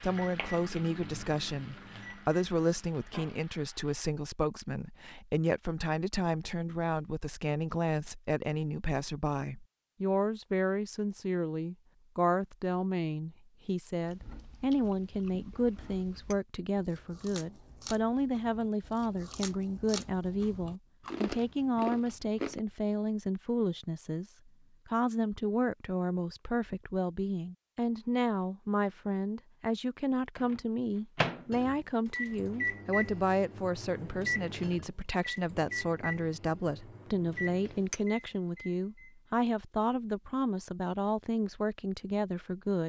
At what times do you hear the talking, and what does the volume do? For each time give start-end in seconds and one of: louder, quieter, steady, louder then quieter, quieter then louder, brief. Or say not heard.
0.0-42.8 steady.